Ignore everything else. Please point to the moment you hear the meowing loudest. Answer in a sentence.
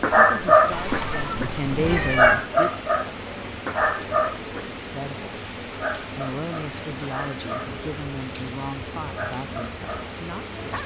The loudest moment of the meowing is at 2 seconds.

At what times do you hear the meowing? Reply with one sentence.
You can hear the meowing from 0.7 to 2.5 s.